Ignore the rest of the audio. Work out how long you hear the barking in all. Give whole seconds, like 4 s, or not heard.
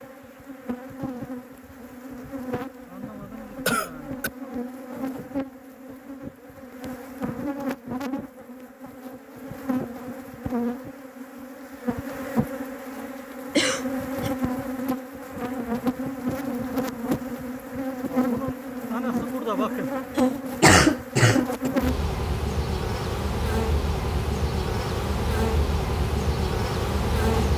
not heard.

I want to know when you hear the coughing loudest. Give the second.
21 s.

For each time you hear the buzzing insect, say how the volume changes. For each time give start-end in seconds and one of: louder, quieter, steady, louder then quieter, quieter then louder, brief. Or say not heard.
0.0-27.5 louder.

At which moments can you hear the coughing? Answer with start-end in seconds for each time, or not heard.
3.2-4.3, 13.6-14.3, 20.1-21.7.